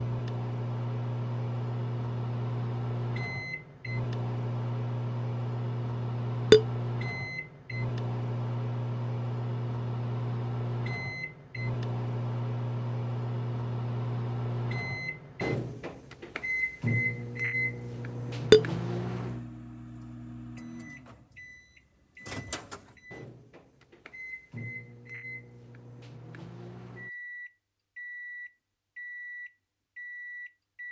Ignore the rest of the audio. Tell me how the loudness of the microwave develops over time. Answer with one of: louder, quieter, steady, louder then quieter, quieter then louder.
quieter.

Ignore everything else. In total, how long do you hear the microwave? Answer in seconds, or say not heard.
31 s.